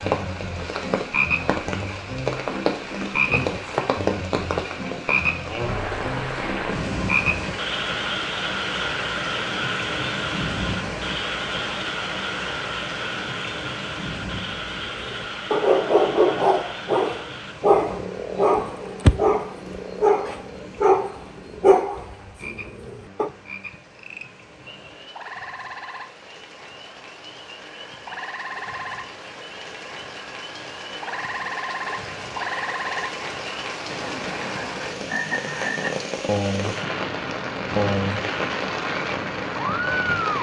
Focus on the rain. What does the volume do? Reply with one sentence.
The volume of the rain goes down, then up.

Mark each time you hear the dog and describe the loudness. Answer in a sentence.
The dog can be heard from 14.8 to 23.3 s, at a steady volume.